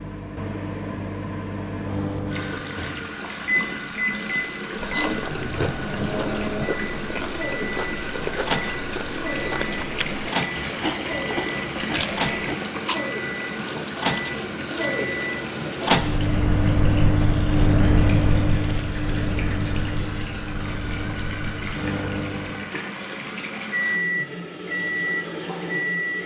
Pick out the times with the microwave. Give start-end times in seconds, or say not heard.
0.0-26.2.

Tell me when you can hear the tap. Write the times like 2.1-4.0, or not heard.
2.2-26.2.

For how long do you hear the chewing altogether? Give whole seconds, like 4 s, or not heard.
10 s.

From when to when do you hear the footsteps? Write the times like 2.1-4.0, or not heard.
not heard.